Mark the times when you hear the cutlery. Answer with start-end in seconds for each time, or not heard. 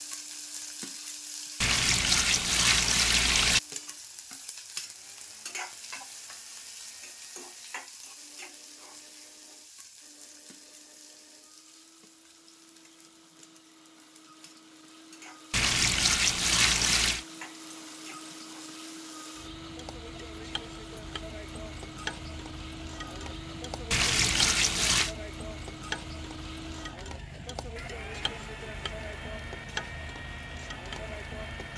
not heard.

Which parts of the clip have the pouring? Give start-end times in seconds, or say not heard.
1.6-3.6, 15.5-17.2, 23.9-25.1.